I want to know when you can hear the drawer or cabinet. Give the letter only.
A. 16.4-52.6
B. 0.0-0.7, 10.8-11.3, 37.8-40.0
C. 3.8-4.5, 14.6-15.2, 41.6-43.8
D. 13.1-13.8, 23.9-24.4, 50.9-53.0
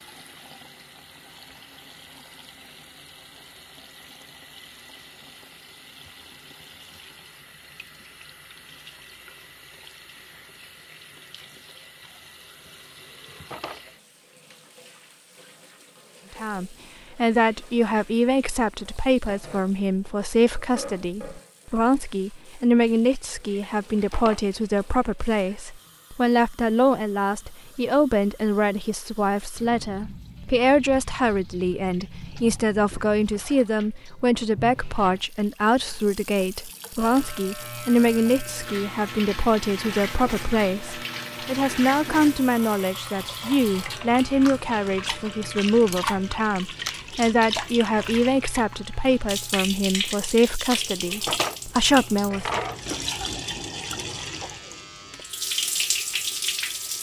D.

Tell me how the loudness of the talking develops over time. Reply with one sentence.
The volume of the talking stays about the same.